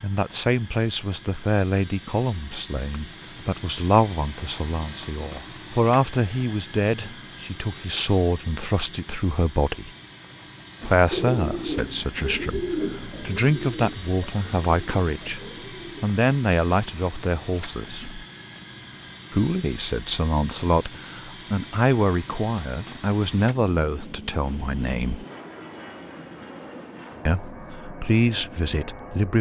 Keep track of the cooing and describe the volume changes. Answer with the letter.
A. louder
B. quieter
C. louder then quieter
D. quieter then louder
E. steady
B.